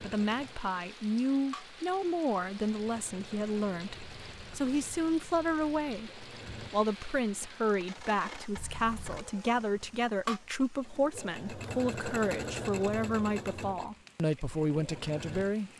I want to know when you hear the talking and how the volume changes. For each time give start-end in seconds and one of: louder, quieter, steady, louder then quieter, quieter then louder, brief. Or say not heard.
0.0-15.7 steady.